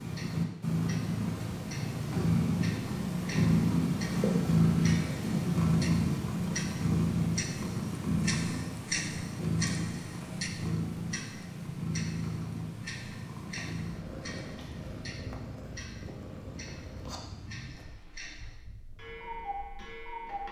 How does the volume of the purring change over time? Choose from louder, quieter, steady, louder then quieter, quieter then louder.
quieter.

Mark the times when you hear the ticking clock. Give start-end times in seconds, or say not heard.
0.0-20.4.